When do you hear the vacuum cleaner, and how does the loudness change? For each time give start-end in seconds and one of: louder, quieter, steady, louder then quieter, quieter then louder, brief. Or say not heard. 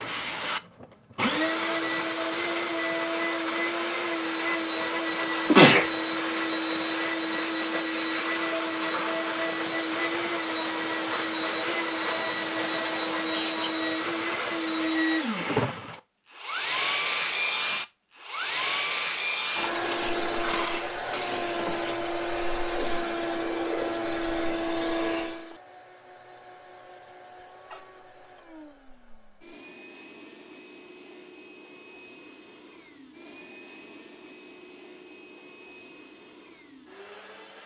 0.0-37.6 quieter.